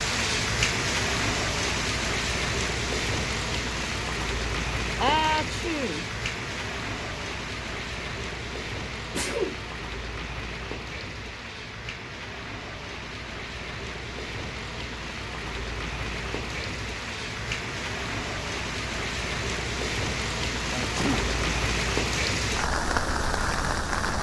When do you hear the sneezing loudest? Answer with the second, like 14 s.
5 s.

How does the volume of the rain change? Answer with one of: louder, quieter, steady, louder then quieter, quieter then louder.
quieter then louder.